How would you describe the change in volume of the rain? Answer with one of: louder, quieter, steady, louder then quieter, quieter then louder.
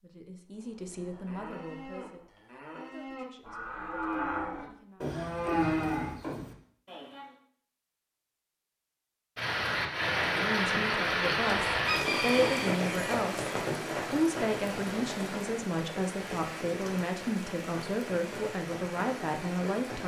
quieter.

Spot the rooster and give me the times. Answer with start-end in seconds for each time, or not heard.
11.7-13.2.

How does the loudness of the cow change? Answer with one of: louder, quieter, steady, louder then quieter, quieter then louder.
louder.